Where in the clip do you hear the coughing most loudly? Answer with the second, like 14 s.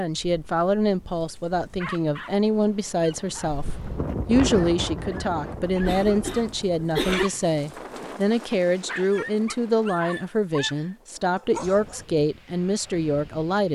7 s.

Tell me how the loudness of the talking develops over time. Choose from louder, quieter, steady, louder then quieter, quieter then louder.
steady.